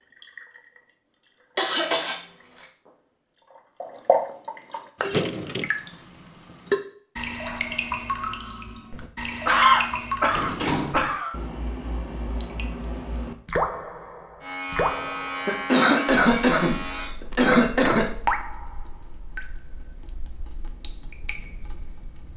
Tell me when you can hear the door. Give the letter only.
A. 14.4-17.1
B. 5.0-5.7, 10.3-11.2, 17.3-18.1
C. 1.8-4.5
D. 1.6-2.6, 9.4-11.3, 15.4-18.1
B.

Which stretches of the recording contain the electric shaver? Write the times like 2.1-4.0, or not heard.
14.4-17.1.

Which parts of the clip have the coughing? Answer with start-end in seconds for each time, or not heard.
1.6-2.6, 9.4-11.3, 15.4-18.1.